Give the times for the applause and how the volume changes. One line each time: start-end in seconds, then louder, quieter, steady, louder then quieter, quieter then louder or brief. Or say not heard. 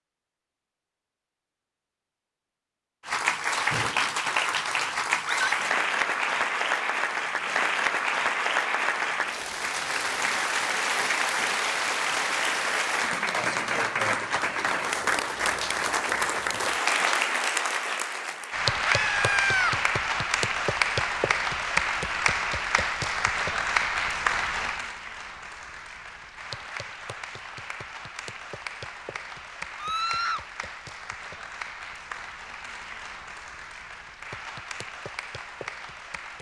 3.0-36.3 quieter.